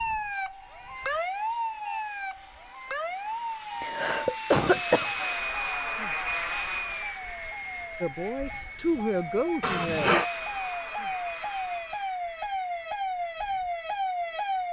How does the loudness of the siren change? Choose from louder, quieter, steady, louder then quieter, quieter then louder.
quieter then louder.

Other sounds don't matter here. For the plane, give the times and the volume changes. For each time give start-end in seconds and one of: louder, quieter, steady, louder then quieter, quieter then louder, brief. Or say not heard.
0.0-14.6 louder then quieter.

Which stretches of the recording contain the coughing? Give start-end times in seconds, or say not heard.
3.8-5.3, 9.6-10.2.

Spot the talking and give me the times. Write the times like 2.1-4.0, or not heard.
8.0-10.2.